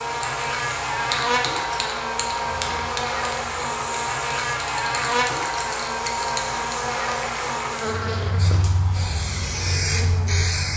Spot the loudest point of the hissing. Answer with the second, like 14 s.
10 s.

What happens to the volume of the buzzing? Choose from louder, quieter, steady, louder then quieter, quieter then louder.
quieter.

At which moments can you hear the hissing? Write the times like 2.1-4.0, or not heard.
0.0-10.7.